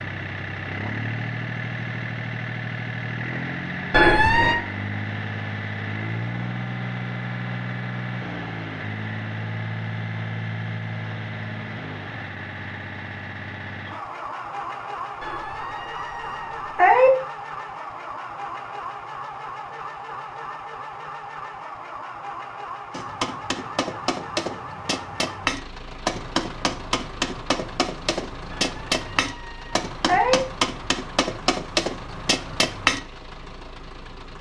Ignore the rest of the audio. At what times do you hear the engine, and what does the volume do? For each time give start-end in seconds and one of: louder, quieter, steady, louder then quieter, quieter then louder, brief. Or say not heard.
0.0-34.3 quieter.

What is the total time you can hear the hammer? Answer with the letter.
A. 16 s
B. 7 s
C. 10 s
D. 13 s
C.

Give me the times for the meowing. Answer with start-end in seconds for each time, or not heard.
3.9-4.5, 15.2-17.1, 28.5-30.4.